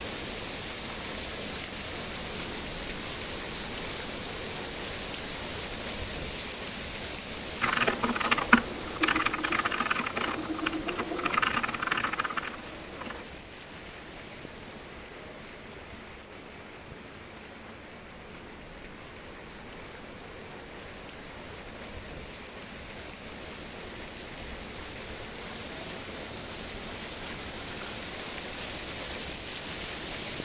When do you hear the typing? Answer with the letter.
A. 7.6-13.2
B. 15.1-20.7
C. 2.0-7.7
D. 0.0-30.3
A.